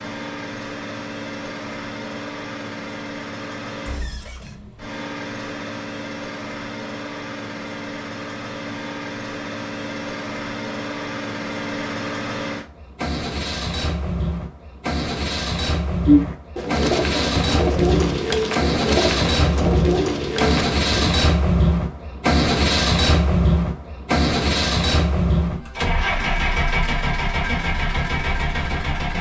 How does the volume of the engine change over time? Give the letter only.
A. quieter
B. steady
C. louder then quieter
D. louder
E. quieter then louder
D.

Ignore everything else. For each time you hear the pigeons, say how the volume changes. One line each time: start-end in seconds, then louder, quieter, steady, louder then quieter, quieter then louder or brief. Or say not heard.
16.1-21.1 steady.